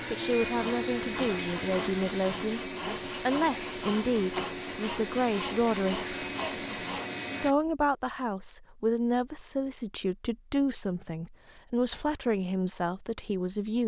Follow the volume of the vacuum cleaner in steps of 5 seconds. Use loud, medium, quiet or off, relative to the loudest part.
loud, loud, off.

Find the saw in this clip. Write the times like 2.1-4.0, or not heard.
0.5-7.1.